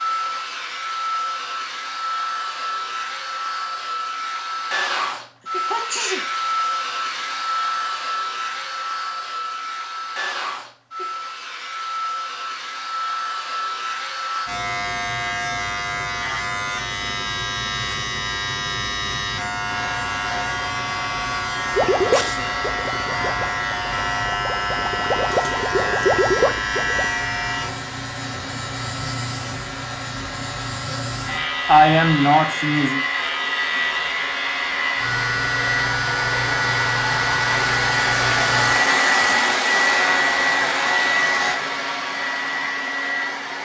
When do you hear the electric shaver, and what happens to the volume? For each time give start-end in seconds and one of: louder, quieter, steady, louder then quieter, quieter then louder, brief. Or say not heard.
14.4-41.5 steady.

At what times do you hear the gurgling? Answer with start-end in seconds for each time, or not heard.
21.8-27.1.